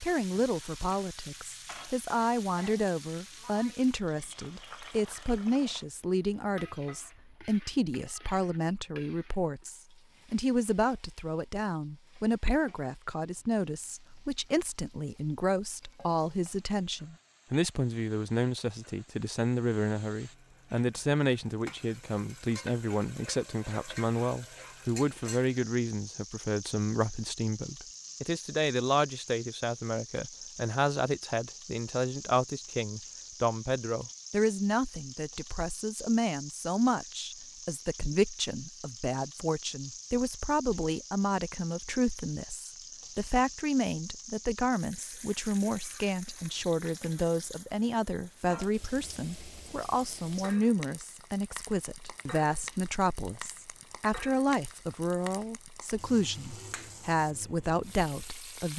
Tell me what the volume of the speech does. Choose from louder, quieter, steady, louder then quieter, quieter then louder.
steady.